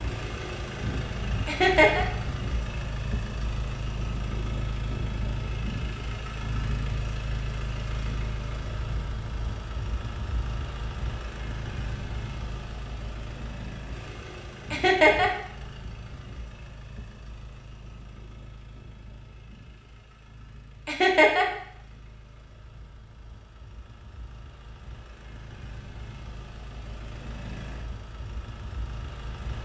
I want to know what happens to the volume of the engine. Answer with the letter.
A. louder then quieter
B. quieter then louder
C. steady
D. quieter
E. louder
B.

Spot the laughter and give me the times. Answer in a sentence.
You can hear the laughter from 1.4 to 2.0 s, from 14.7 to 15.3 s and from 20.9 to 21.4 s.